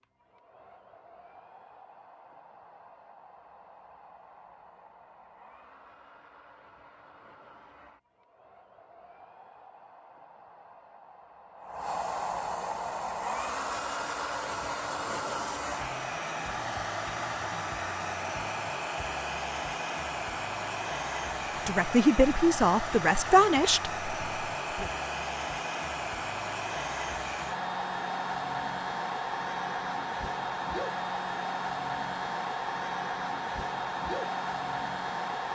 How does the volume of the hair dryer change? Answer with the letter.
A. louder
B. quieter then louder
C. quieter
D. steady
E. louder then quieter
A.